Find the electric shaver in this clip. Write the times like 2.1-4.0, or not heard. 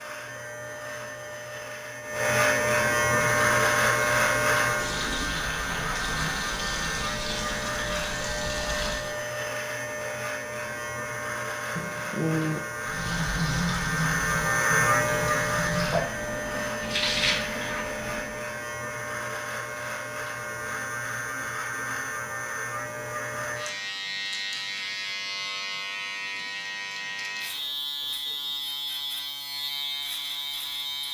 0.0-31.0.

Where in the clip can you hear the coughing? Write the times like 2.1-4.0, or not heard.
11.8-12.7.